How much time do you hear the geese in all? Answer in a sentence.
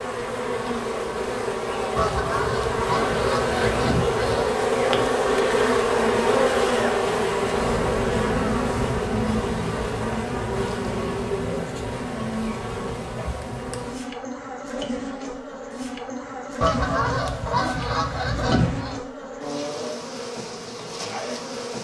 You can hear the geese for 5 seconds altogether.